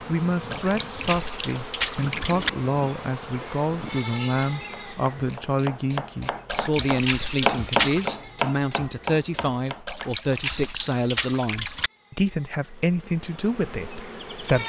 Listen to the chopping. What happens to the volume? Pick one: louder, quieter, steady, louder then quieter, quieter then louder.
louder then quieter.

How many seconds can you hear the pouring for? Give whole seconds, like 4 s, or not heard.
6 s.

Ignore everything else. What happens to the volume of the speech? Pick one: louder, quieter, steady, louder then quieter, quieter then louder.
steady.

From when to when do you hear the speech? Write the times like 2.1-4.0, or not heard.
0.1-14.6.